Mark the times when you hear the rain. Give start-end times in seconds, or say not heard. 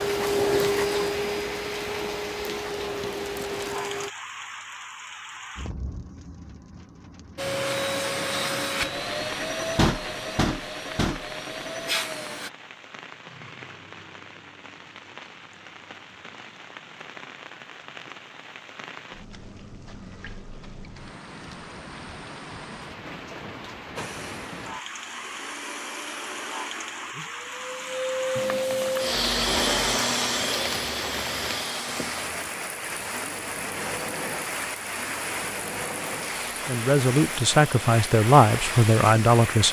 0.0-39.6.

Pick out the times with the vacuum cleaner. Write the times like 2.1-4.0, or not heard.
0.0-4.1, 7.3-12.5, 23.9-39.4.